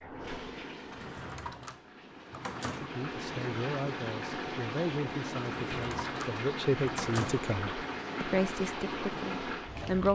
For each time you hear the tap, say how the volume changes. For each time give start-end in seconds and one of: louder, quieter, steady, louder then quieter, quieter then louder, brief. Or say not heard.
0.0-10.0 louder.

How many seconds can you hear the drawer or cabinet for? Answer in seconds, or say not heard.
4 s.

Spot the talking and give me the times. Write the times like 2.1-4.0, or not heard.
2.8-10.0.